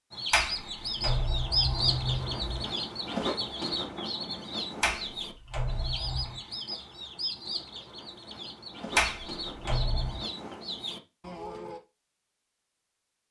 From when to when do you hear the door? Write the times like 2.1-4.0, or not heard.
0.3-2.7, 4.8-6.4, 8.9-10.2.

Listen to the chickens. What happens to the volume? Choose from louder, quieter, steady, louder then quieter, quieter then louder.
quieter.